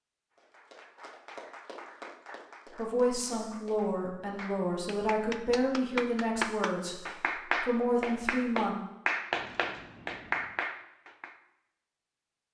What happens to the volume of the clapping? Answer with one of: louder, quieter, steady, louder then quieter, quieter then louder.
louder.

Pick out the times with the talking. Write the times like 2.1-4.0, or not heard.
2.8-7.0, 7.6-8.8.